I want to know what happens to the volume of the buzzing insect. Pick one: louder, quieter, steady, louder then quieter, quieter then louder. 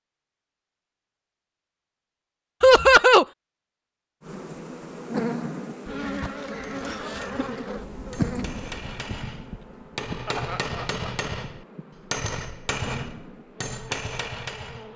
quieter then louder.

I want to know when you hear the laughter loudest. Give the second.
3 s.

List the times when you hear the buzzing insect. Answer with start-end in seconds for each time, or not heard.
4.2-14.9.